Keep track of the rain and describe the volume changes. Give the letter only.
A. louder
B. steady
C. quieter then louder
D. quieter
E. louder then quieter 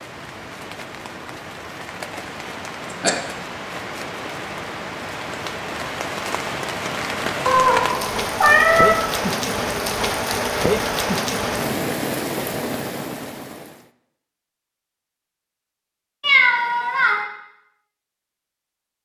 A.